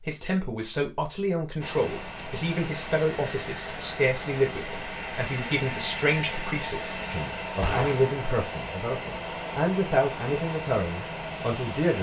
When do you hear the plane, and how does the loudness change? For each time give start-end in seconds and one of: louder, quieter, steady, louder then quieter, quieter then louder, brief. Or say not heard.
1.6-11.9 steady.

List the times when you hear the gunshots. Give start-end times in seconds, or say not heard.
7.6-8.1.